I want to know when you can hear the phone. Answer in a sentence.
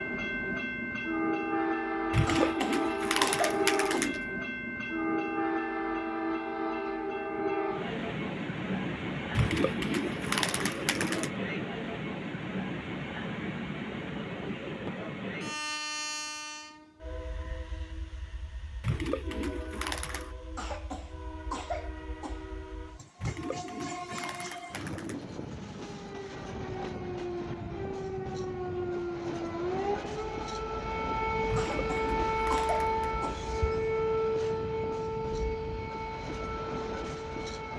The phone can't be heard in this clip.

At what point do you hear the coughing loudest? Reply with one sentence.
The loudest moment of the coughing is at 3 seconds.